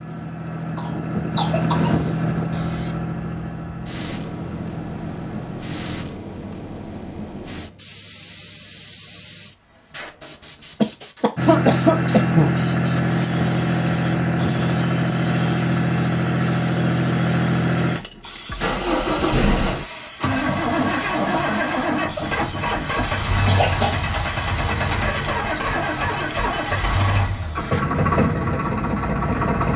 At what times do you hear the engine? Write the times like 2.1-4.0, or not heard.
0.0-6.0, 11.3-29.7.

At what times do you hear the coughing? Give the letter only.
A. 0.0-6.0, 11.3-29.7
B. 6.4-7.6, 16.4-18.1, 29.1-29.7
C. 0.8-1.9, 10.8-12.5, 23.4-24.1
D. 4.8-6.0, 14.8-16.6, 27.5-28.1
C.